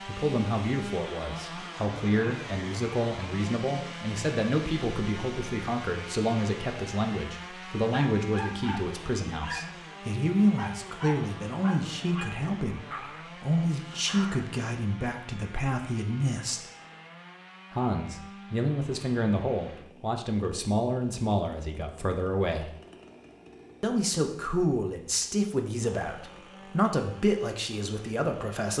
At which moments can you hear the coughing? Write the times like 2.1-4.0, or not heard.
not heard.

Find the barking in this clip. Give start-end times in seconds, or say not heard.
7.9-9.8, 10.6-14.6.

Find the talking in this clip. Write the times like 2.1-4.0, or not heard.
0.1-16.6, 17.7-22.7, 23.8-28.7.